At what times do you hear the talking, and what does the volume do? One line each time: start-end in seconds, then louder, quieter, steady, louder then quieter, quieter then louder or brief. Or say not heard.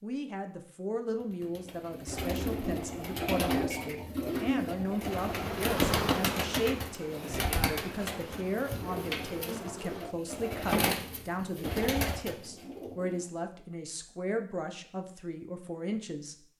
0.0-16.4 steady.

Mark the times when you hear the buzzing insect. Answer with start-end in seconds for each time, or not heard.
5.2-10.2.